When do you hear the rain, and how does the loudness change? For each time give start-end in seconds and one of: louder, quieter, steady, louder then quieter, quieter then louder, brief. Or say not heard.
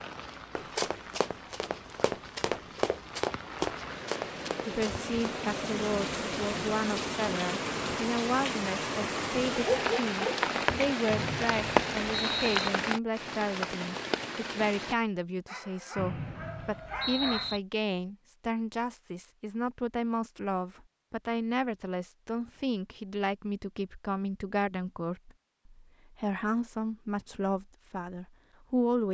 0.0-14.9 louder.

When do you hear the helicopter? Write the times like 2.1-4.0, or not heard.
not heard.